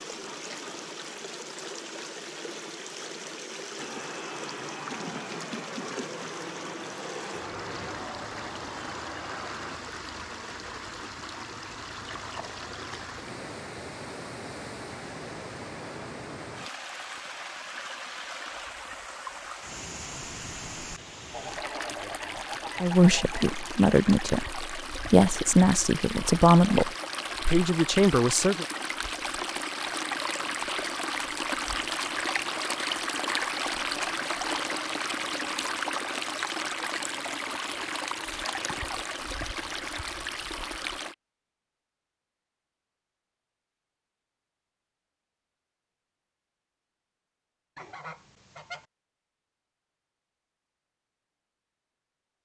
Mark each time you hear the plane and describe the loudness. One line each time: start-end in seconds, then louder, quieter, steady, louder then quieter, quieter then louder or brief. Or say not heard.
3.8-9.8 steady.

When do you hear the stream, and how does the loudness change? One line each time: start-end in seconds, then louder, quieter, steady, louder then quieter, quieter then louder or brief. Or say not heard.
0.0-41.1 louder.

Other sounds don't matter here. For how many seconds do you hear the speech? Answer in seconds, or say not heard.
6 s.